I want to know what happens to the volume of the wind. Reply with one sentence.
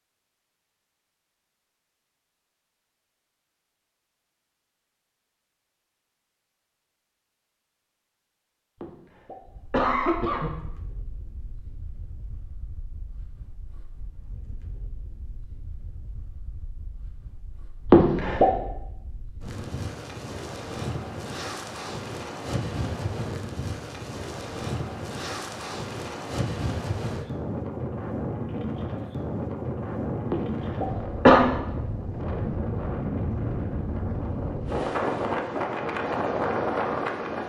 The volume of the wind goes up.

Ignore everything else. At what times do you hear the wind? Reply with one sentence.
The wind can be heard from 9.4 to 37.4 s.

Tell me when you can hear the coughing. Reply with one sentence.
You can hear the coughing from 8.8 to 10.5 s, from 17.9 to 18.5 s and from 30.3 to 31.4 s.